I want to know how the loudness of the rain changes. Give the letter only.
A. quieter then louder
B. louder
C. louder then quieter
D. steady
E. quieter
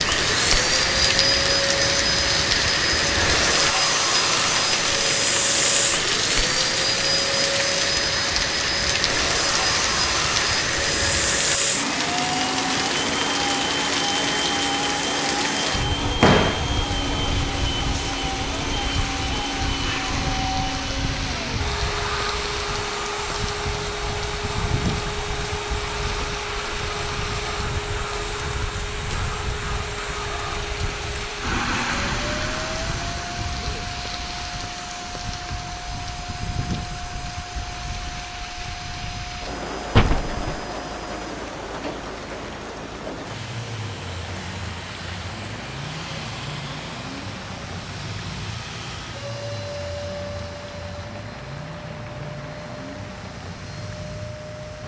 E.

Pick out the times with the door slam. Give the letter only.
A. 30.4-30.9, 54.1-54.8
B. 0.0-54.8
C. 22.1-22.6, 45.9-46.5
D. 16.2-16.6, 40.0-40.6
D.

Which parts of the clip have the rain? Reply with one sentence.
The rain can be heard from 0.0 to 54.8 s.